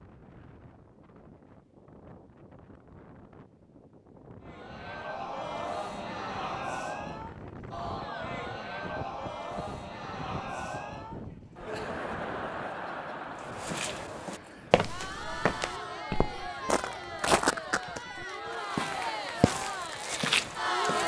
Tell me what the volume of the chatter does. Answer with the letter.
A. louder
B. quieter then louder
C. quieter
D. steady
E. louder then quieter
D.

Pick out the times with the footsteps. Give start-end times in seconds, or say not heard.
13.4-21.0.